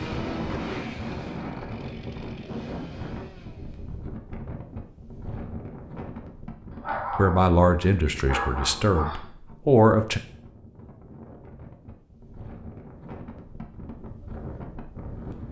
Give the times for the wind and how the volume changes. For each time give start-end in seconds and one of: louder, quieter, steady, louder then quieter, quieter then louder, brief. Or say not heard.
0.0-15.4 quieter then louder.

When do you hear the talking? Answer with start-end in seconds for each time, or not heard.
7.2-10.2.